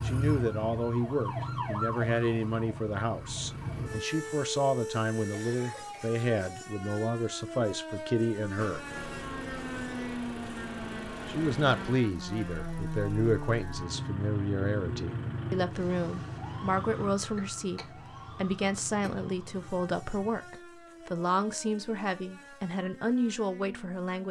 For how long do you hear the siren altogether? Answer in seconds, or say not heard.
24 s.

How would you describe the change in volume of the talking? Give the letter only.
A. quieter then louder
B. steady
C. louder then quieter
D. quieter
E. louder
B.